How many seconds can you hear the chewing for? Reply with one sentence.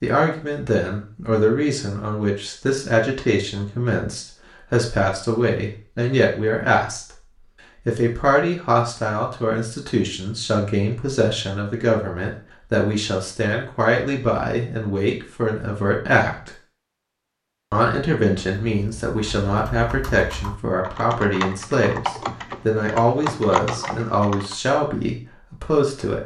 The chewing can't be heard in this clip.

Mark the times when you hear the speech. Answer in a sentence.
The speech can be heard from 0.0 to 7.2 s, from 7.8 to 16.5 s and from 17.7 to 26.2 s.